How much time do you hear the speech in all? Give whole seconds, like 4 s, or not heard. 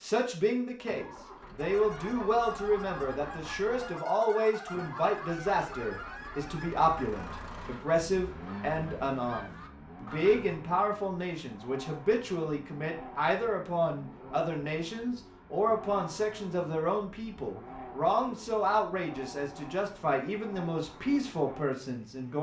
22 s.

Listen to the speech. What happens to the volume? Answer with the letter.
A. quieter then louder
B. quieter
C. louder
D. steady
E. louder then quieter
D.